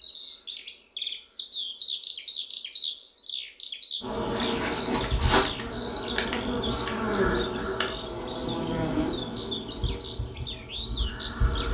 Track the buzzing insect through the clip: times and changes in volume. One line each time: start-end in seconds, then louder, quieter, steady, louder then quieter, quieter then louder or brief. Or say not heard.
4.0-11.7 quieter.